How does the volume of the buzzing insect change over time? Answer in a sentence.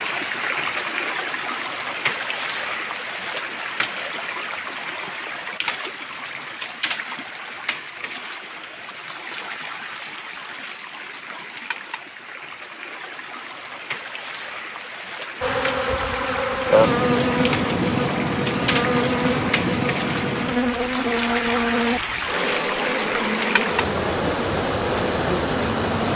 The volume of the buzzing insect goes down.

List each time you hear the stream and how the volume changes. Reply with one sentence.
The stream can be heard from 0.0 to 26.1 s, getting quieter then louder.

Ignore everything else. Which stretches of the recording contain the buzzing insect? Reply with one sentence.
The buzzing insect can be heard from 15.4 to 26.1 s.